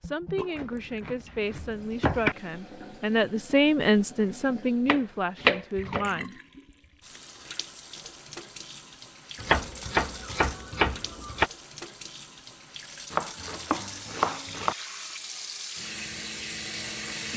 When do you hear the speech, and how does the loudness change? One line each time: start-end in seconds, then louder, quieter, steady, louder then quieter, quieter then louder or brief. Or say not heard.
0.0-6.3 louder then quieter.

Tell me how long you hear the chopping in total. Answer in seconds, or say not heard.
7 s.